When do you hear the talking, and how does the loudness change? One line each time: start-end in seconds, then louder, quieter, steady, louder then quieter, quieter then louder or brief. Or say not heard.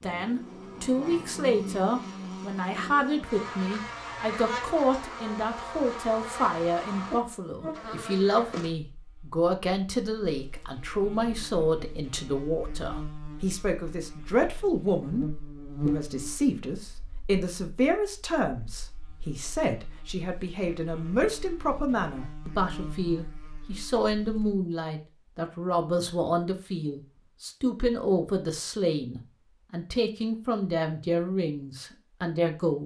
0.0-15.2 steady
15.8-32.8 steady.